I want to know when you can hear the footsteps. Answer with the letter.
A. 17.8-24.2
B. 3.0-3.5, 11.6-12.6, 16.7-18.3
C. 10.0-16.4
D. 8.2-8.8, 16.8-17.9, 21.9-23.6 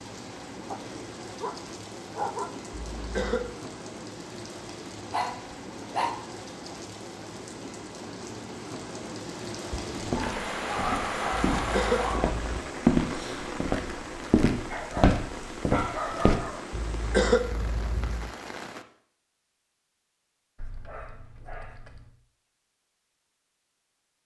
C.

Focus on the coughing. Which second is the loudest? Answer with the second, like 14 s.
17 s.